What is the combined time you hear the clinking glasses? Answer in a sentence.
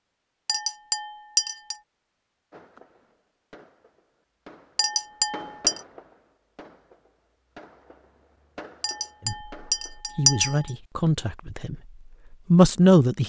The clinking glasses can be heard for 4 seconds in total.